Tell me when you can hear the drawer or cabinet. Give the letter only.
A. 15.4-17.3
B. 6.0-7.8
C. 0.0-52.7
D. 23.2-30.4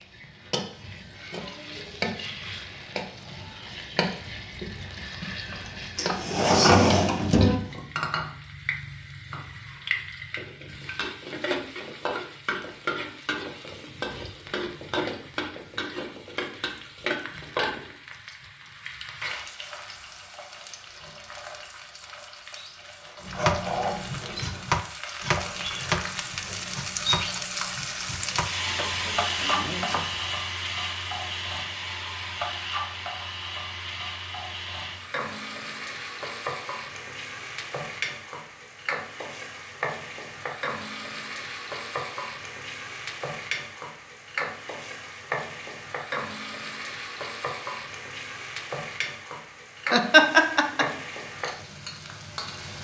B.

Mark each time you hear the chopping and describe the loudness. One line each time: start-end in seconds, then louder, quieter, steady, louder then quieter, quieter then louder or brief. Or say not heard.
23.2-30.4 quieter.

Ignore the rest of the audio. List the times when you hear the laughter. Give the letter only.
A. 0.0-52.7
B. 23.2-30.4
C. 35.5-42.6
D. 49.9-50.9
D.